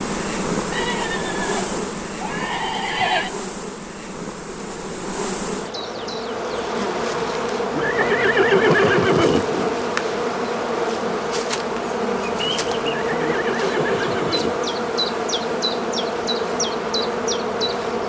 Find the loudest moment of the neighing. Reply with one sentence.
The volume of the neighing peaks at 9 seconds.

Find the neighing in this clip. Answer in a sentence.
The neighing can be heard from 0.7 to 3.3 s, from 7.7 to 9.8 s and from 12.8 to 14.7 s.